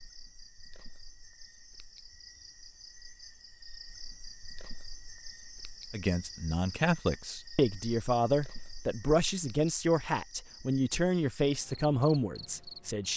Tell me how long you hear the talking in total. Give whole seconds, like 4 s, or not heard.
7 s.